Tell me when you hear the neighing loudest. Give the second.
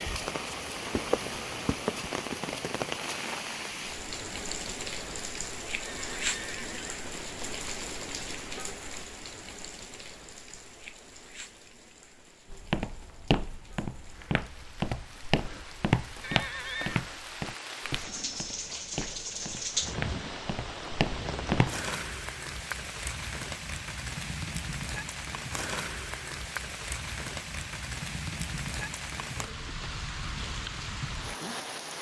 17 s.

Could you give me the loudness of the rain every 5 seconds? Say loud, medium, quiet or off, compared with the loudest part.
loud, loud, quiet, loud, loud, loud, loud.